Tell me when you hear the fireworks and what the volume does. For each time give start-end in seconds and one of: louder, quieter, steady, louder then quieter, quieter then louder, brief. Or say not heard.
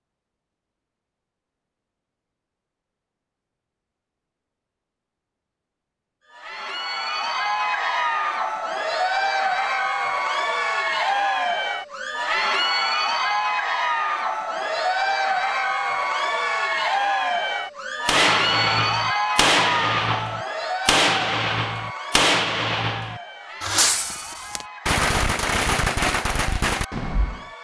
18.1-27.4 steady.